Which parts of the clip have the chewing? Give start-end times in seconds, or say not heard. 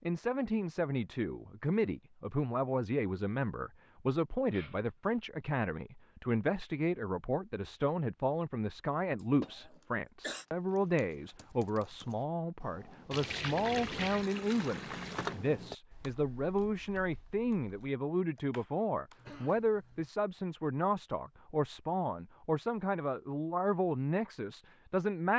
not heard.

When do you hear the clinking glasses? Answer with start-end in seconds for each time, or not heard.
not heard.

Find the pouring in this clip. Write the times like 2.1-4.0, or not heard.
13.1-15.4.